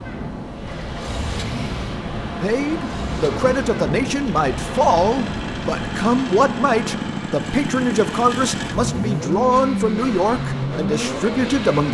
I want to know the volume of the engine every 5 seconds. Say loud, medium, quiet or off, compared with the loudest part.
medium, loud, loud.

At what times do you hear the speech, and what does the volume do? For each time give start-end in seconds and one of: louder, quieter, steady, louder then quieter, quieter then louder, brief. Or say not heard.
2.4-11.8 steady.